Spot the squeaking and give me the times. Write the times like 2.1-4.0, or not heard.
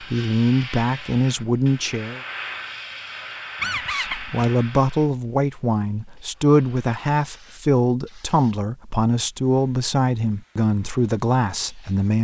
3.6-4.5.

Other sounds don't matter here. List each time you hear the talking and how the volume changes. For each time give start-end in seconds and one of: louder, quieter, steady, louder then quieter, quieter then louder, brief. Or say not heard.
0.0-2.2 brief
3.6-12.1 steady.